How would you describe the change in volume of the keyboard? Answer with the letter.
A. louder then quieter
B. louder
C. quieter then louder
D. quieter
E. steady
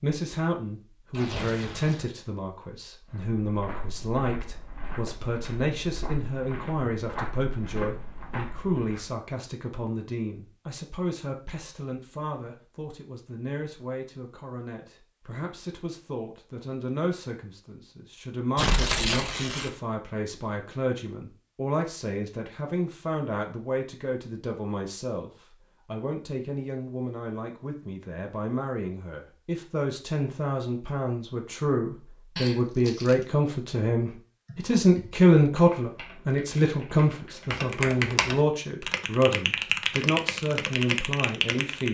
B.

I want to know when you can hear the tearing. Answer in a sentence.
You can hear the tearing from 1.1 to 2.1 s, from 18.6 to 19.7 s and from 32.4 to 33.2 s.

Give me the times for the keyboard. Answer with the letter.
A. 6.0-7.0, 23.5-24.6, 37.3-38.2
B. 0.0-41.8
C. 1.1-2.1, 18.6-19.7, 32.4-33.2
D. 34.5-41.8
D.